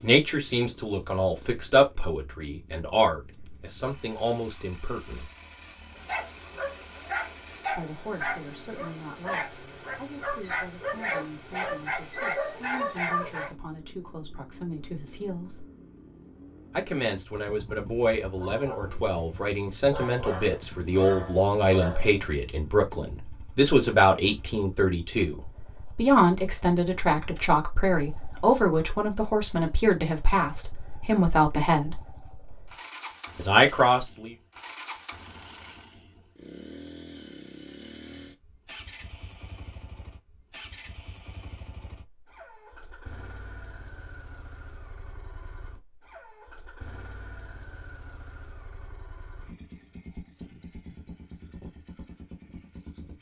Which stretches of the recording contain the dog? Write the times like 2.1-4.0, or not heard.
6.0-13.5, 18.3-22.4.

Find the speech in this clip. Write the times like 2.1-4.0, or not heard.
0.0-5.3, 7.7-15.7, 16.7-32.0, 33.4-34.4.